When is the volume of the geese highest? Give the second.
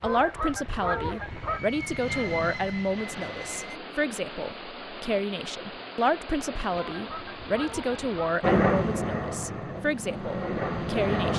1 s.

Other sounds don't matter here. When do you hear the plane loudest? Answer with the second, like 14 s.
9 s.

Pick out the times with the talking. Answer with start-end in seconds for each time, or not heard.
0.0-11.3.